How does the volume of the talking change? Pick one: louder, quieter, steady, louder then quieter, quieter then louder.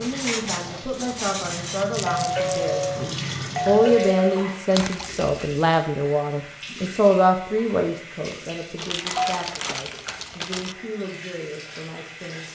louder then quieter.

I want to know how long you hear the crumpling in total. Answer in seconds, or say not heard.
3 s.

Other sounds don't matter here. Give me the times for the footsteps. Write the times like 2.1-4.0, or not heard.
not heard.